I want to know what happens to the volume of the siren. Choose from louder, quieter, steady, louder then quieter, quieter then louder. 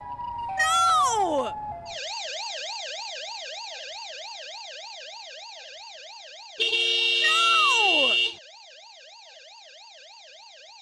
quieter.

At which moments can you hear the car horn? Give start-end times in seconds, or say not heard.
6.5-8.4.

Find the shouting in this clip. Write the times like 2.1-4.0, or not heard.
0.6-1.6, 7.2-8.2.